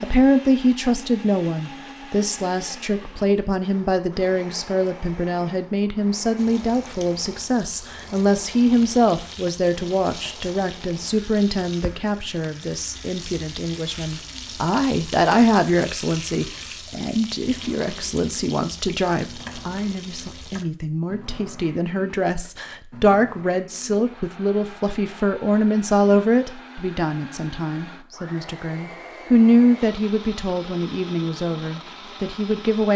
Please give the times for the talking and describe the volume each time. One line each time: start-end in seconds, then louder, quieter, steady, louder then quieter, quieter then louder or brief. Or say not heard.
0.0-32.9 steady.